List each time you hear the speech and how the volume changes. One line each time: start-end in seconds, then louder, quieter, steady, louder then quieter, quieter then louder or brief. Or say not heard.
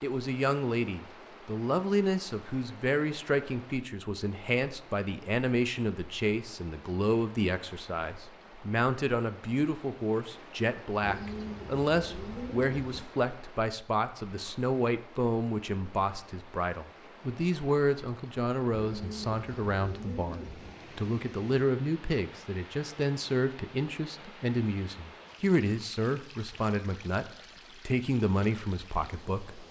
0.0-29.6 steady.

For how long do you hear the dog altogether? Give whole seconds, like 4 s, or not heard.
not heard.